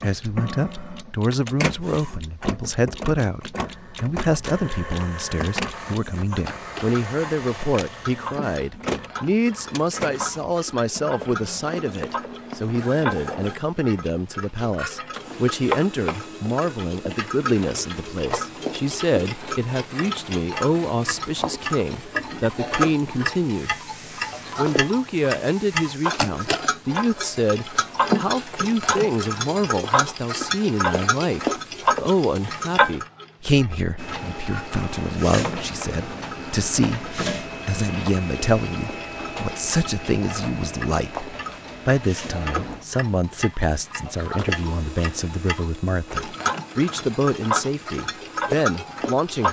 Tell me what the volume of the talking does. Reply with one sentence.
The loudness of the talking stays about the same.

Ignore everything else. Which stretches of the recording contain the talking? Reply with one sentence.
You can hear the talking from 0.0 to 23.8 s and from 24.6 to 49.4 s.